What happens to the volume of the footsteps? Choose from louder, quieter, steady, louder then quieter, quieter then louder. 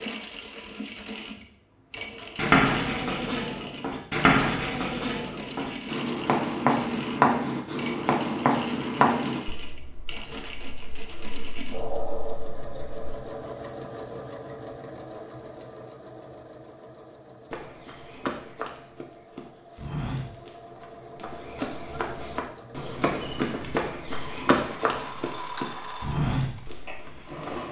louder.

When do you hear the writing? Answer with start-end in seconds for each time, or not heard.
2.4-13.0.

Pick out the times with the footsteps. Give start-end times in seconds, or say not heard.
17.5-27.6.